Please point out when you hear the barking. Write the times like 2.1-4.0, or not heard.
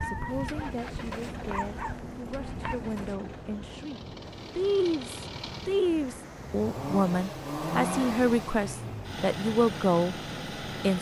0.0-3.1.